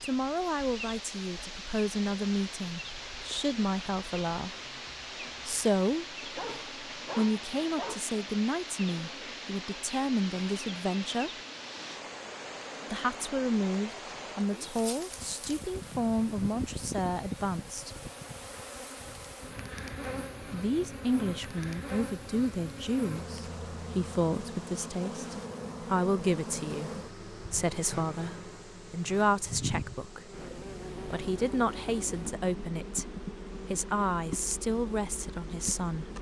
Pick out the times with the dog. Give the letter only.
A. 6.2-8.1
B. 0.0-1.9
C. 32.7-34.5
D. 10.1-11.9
A.